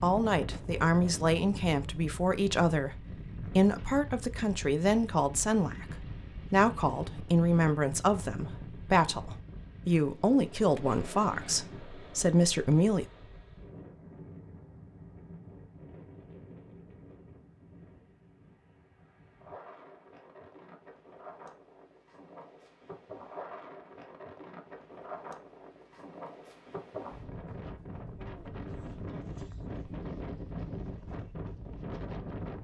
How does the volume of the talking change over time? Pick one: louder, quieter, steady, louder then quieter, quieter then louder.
steady.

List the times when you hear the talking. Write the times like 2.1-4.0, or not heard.
0.0-13.1.